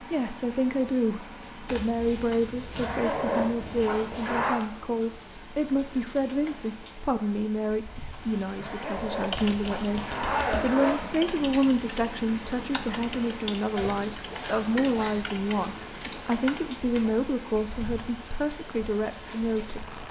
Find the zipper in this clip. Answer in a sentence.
The zipper can be heard from 2.8 to 4.6 s, from 8.6 to 11.1 s and from 13.8 to 15.7 s.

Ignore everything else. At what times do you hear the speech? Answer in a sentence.
The speech can be heard from 0.0 to 10.0 s and from 10.6 to 19.9 s.